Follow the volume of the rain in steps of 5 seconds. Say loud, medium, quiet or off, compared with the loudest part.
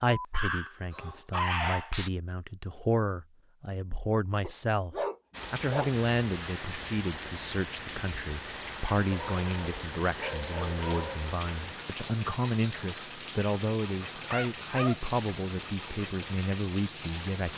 off, loud, loud, loud.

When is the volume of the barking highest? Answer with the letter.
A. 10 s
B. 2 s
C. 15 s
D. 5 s
B.